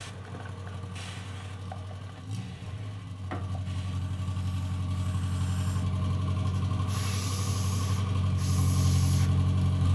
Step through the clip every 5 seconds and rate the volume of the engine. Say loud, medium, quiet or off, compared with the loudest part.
medium, loud.